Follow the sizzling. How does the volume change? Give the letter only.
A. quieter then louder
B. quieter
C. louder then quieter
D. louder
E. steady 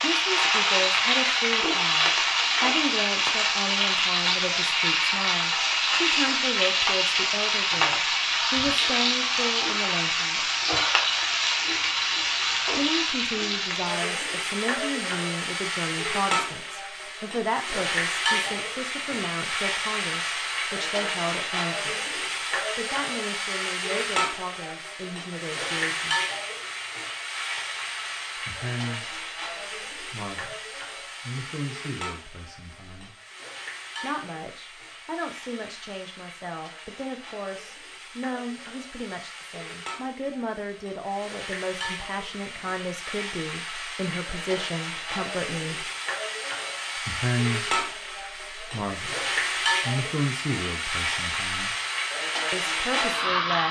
A.